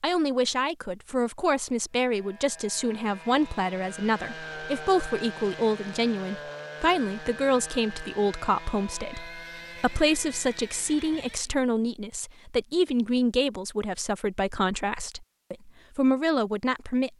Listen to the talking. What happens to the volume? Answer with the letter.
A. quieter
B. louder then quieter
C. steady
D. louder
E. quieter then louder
C.